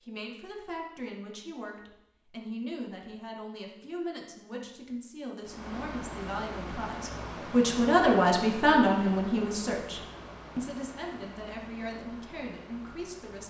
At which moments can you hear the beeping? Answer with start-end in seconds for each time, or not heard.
not heard.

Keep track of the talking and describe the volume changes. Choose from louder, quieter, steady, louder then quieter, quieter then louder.
louder then quieter.